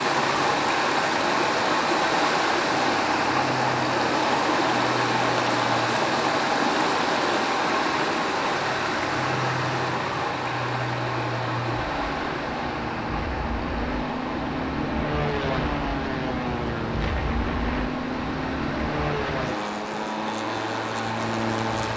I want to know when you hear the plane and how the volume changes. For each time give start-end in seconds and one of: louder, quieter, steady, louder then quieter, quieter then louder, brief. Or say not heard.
0.0-21.9 louder.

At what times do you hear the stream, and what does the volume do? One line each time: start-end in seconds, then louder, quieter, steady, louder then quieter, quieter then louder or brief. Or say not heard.
0.0-21.9 quieter.